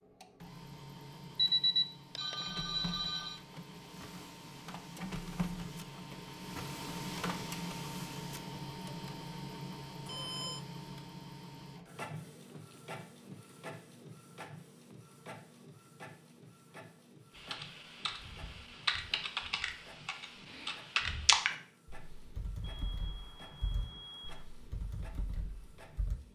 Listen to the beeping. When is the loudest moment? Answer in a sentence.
The volume of the beeping peaks at 2 seconds.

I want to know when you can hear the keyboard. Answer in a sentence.
The keyboard can be heard from 17.4 to 26.1 s.